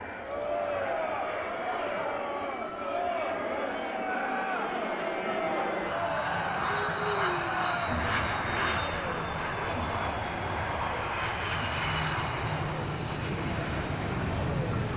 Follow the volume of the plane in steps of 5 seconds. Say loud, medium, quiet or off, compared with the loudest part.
medium, loud, loud.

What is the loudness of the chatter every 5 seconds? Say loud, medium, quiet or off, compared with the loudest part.
loud, loud, medium.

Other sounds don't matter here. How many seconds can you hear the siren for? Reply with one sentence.
You can't hear the siren here.